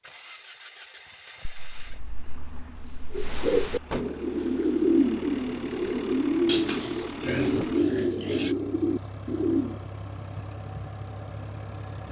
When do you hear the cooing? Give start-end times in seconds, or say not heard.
3.1-9.8.